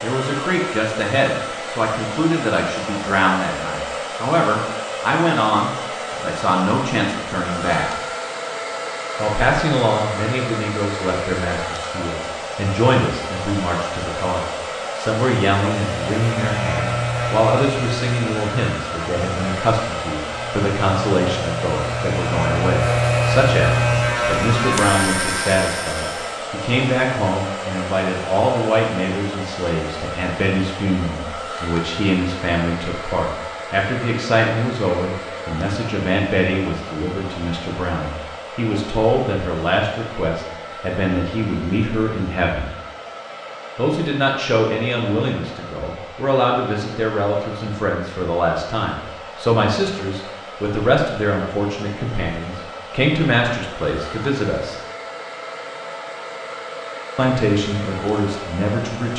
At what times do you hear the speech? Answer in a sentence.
The speech can be heard from 0.0 to 7.9 s, from 9.2 to 42.7 s, from 43.8 to 54.8 s and from 57.1 to 59.1 s.